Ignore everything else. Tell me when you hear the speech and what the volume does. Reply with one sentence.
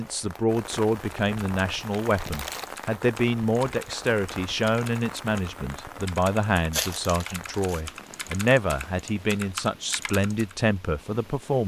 You can hear the speech from 0.0 to 11.6 s, at a steady volume.